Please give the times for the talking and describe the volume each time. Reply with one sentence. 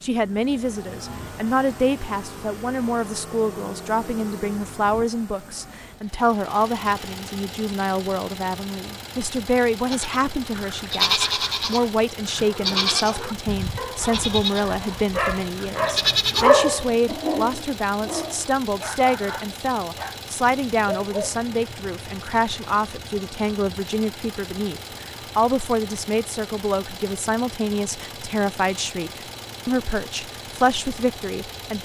You can hear the talking from 0.0 to 31.7 s, at a steady volume.